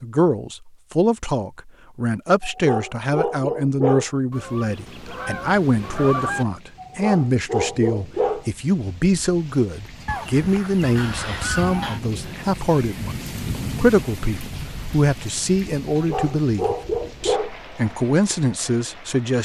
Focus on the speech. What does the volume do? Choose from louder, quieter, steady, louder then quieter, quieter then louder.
steady.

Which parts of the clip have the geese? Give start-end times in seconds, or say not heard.
4.3-6.5, 10.1-12.0.